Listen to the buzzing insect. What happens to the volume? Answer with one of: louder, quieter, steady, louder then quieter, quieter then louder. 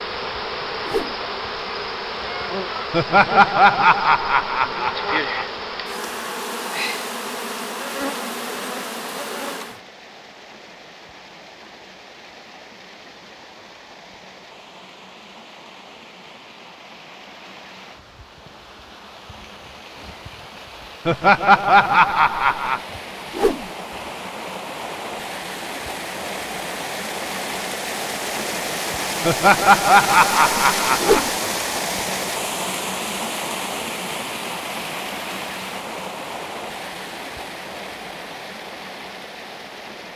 steady.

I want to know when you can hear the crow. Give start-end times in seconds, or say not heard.
not heard.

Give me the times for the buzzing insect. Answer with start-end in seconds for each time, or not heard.
0.0-9.8.